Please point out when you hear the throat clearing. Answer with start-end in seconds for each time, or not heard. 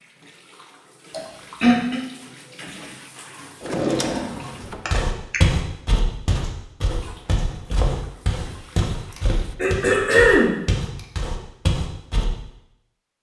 1.1-2.0, 4.8-5.4, 9.1-10.6.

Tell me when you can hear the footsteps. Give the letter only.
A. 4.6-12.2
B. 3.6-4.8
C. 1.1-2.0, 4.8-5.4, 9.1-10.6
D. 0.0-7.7
A.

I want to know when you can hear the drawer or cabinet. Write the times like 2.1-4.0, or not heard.
3.6-4.8.